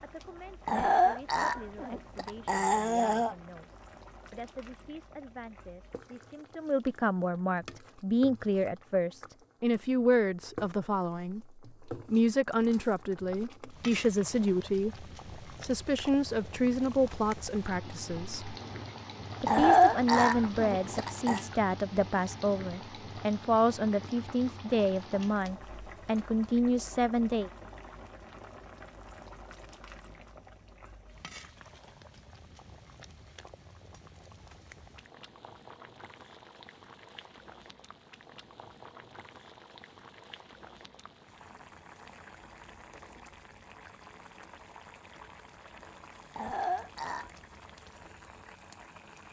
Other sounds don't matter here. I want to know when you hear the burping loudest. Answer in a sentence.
The loudest moment of the burping is at 20 seconds.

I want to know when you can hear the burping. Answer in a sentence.
You can hear the burping from 0.7 to 3.4 s, from 19.4 to 21.4 s and from 46.4 to 47.3 s.